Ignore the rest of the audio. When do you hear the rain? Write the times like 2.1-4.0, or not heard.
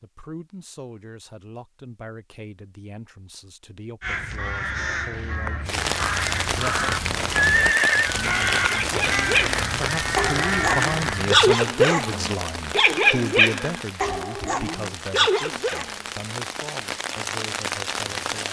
5.7-18.4.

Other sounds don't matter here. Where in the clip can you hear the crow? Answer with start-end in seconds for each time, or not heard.
4.0-11.6.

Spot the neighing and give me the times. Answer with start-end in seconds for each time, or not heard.
6.8-8.1.